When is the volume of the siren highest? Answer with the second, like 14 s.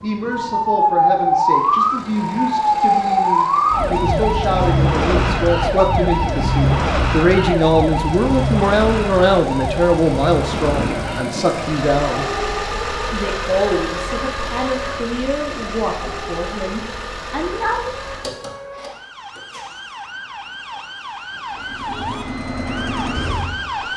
1 s.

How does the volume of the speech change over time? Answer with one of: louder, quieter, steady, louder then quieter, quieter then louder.
louder then quieter.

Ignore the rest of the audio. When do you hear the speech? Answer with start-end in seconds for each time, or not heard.
0.0-12.2, 13.1-17.9.